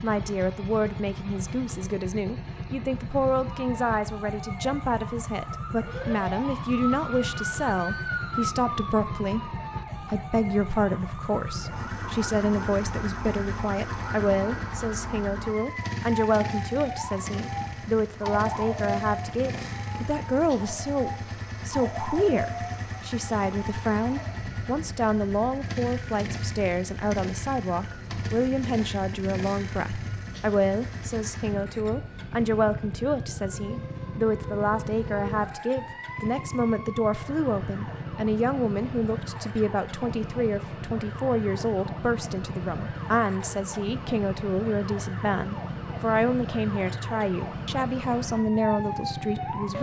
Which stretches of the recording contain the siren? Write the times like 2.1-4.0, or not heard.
3.5-49.7.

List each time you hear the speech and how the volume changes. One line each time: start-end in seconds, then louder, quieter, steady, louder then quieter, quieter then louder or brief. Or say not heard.
0.0-49.7 steady.